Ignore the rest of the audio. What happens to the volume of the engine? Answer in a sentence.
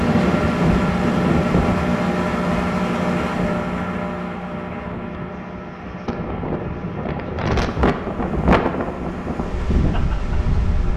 The volume of the engine goes down.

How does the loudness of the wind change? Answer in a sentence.
The loudness of the wind goes down, then up.